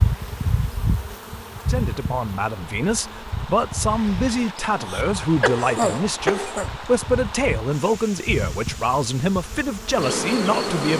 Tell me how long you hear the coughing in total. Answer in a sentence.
The coughing can be heard for 2 seconds in total.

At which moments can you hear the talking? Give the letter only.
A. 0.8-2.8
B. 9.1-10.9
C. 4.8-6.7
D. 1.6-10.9
D.